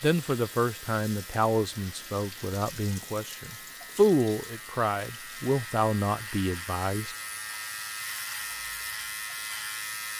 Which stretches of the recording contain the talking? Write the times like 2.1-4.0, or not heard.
0.0-7.2.